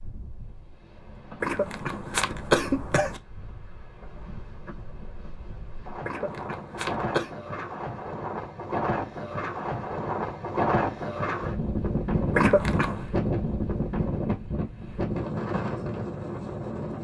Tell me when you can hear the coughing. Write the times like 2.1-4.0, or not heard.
1.4-3.2, 6.0-7.3, 12.3-13.1.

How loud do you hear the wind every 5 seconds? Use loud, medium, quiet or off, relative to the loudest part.
quiet, medium, loud, loud.